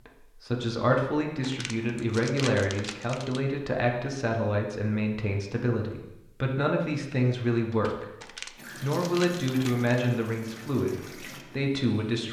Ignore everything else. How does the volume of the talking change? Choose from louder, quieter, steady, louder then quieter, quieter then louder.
steady.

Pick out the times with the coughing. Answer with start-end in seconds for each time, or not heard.
not heard.